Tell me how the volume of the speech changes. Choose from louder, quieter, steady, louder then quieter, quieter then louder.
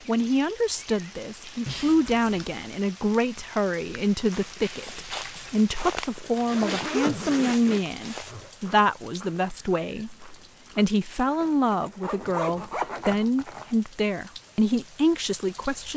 steady.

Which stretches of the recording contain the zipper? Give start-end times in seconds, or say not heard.
1.6-2.6, 6.2-8.5, 11.4-13.7.